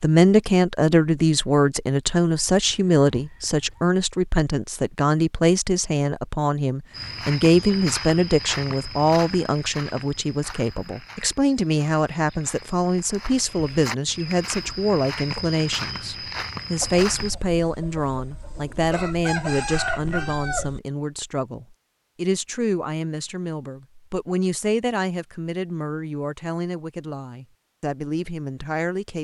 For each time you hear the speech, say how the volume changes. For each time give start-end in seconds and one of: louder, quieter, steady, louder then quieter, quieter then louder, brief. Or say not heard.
0.0-29.1 quieter.